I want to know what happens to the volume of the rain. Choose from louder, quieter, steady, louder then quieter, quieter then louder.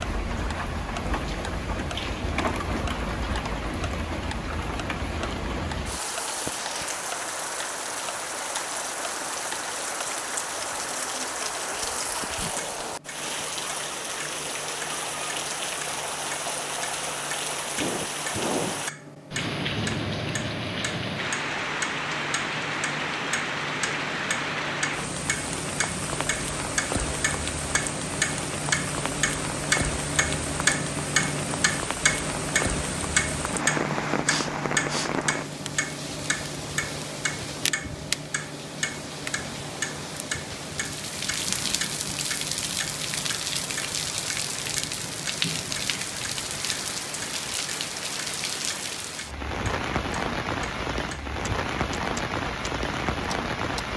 steady.